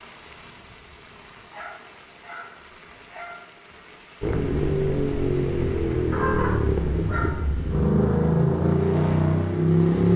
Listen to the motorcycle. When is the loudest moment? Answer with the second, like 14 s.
10 s.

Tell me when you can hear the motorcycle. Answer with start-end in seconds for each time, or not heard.
4.2-10.1.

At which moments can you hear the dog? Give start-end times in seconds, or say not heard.
1.5-3.4, 6.1-7.4.